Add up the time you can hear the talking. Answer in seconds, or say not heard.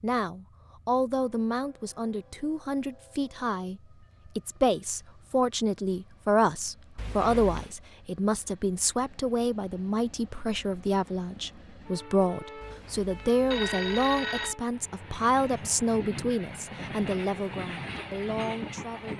19 s.